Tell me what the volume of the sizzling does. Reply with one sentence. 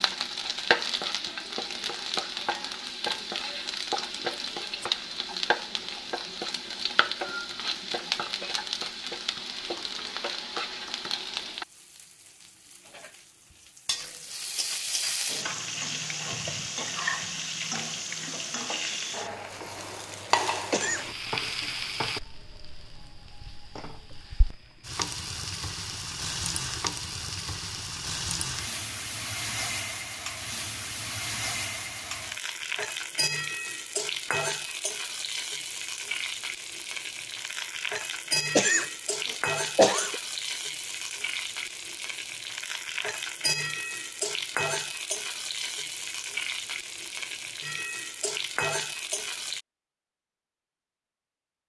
The loudness of the sizzling stays about the same.